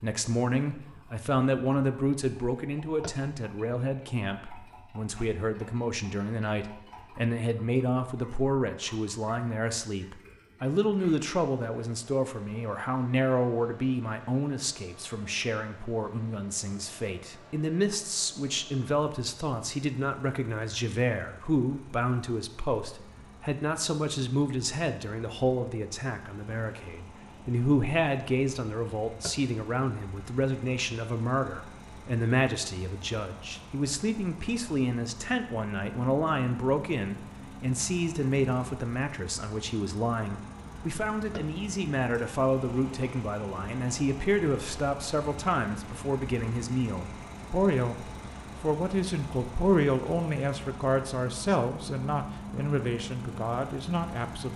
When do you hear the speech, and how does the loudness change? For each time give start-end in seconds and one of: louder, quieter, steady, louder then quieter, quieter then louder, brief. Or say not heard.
0.0-54.5 steady.